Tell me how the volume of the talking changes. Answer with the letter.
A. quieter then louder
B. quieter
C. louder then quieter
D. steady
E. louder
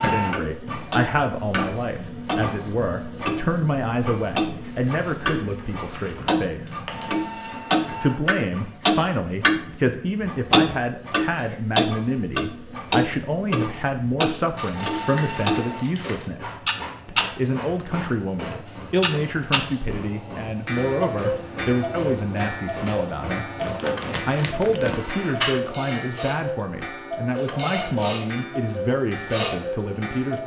D.